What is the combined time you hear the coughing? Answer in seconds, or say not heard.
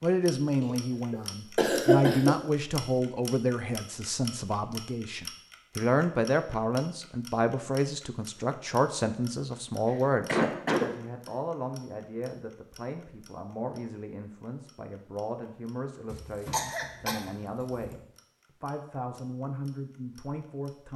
5 s.